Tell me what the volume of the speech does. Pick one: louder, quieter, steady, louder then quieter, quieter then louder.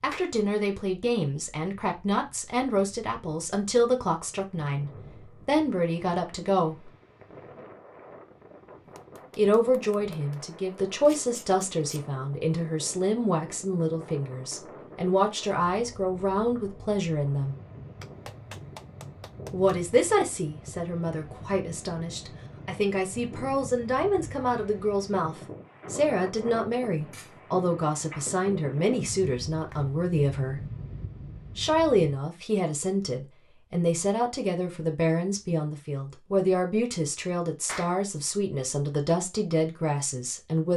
steady.